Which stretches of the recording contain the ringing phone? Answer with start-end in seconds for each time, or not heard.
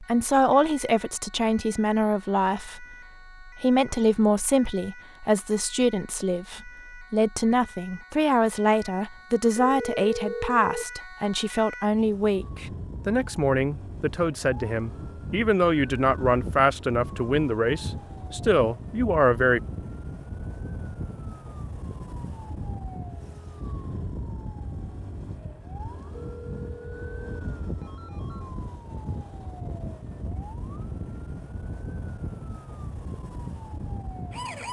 9.5-10.8, 26.2-28.5.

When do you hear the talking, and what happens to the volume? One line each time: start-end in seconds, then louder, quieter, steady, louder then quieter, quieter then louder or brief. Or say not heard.
0.0-19.6 steady.